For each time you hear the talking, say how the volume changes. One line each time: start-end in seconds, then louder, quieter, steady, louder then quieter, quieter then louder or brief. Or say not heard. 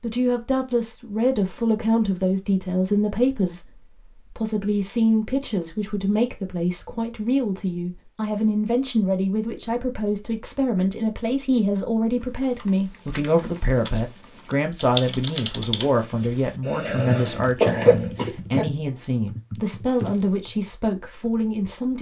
0.0-21.9 steady.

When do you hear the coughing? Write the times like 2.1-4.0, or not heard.
16.6-18.6.